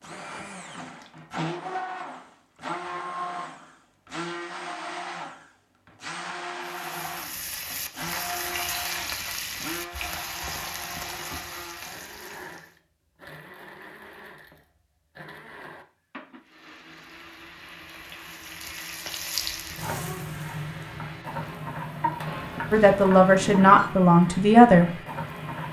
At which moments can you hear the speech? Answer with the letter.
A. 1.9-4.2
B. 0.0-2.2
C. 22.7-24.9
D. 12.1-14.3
C.